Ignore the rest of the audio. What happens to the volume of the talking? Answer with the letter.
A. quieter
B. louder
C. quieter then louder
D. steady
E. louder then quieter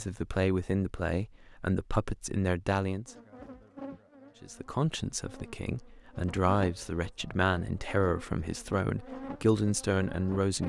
D.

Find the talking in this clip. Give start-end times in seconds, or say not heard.
0.0-3.1, 4.4-10.6.